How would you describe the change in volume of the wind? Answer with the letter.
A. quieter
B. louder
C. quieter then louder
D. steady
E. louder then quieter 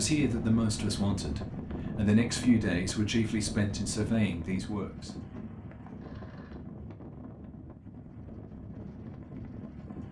A.